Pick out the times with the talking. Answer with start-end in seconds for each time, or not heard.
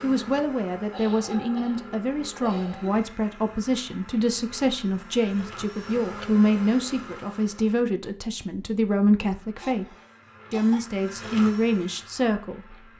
0.0-9.8, 10.5-12.8.